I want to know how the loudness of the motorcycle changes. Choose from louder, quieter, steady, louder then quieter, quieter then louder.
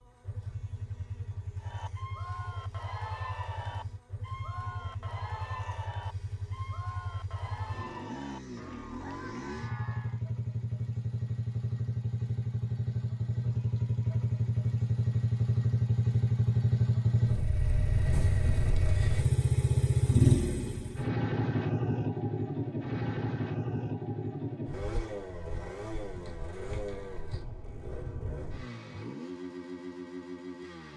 louder then quieter.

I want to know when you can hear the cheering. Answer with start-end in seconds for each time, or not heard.
1.6-10.2.